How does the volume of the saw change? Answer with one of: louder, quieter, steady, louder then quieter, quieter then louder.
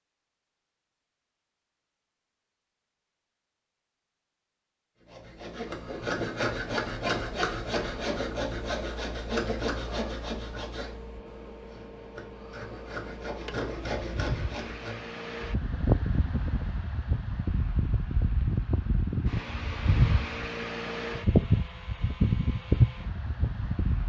quieter then louder.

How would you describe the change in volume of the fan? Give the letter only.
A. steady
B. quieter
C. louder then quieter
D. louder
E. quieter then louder
D.